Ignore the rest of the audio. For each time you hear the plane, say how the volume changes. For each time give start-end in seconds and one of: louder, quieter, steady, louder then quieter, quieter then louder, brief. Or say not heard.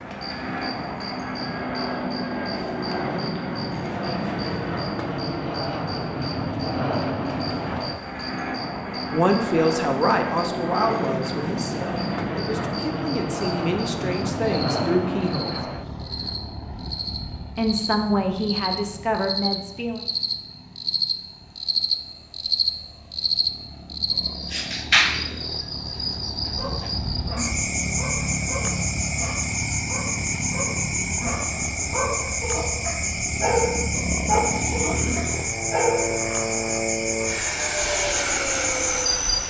0.0-39.4 quieter then louder.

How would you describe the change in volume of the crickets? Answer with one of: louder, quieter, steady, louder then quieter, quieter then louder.
louder.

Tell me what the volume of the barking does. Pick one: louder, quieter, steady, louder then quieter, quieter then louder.
louder.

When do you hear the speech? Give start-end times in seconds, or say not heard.
8.9-15.6, 17.6-20.1.